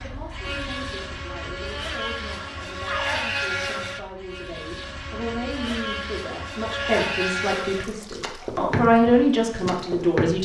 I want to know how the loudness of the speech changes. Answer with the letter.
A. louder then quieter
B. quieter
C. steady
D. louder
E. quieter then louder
D.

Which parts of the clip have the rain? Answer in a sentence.
The rain can't be heard in this clip.